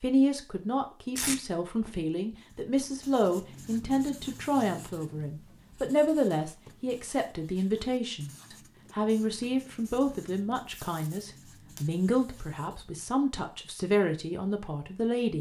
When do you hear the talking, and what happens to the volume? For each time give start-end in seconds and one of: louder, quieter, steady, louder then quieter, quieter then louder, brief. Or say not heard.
0.0-15.3 steady.